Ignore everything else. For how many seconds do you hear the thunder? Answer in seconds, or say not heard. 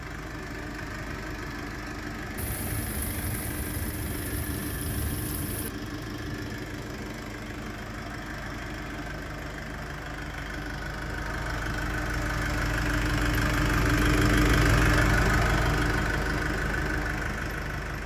3 s.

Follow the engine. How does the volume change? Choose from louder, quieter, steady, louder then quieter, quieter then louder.
louder.